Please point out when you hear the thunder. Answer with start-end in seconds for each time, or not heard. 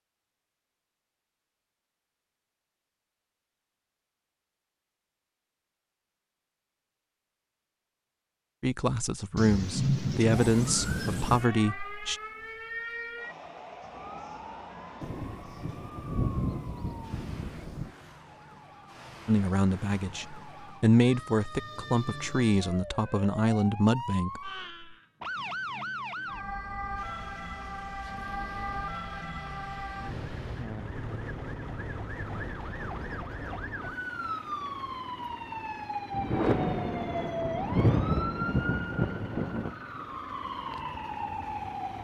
9.3-11.4, 15.0-17.9, 36.1-39.8.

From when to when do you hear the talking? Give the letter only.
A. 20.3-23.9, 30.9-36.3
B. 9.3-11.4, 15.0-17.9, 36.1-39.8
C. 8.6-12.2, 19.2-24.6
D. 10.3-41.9
C.